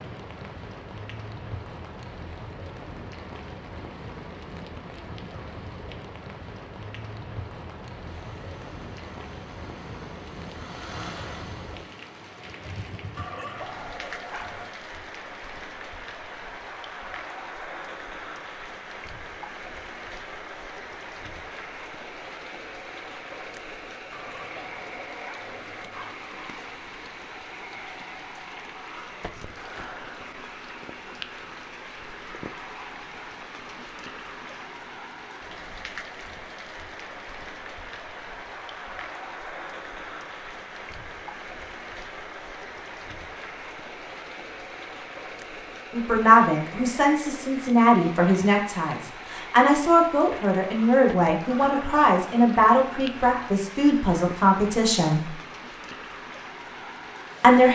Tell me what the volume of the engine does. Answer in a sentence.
The volume of the engine goes up, then down.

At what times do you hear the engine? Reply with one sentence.
The engine can be heard from 8.1 to 12.4 s.